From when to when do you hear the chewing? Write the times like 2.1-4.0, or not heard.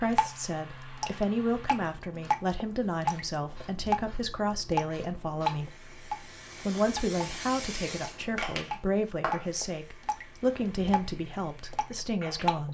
not heard.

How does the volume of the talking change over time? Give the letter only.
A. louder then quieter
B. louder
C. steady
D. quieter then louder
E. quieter
C.